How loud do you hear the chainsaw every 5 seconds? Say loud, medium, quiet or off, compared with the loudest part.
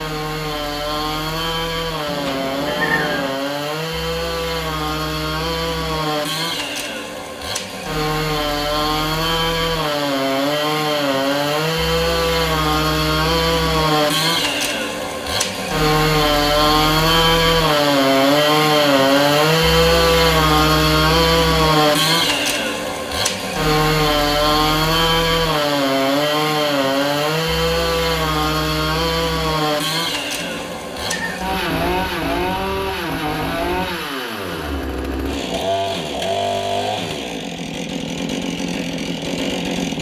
medium, medium, loud, loud, loud, loud, medium, medium.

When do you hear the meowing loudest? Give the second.
3 s.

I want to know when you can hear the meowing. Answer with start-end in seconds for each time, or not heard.
2.0-3.4, 30.4-31.4.